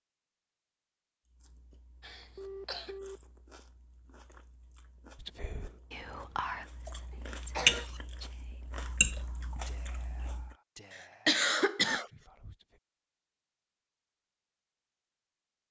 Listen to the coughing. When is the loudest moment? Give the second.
11 s.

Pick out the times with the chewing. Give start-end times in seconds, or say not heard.
1.2-10.6.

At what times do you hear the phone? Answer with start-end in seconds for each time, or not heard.
2.4-3.2.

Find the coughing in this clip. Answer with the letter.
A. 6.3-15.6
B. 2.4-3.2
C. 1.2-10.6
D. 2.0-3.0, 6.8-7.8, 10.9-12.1
D.